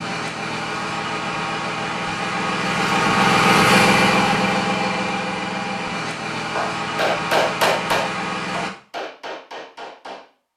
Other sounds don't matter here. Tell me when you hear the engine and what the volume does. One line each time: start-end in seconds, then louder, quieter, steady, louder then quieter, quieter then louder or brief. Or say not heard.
0.0-8.7 louder then quieter.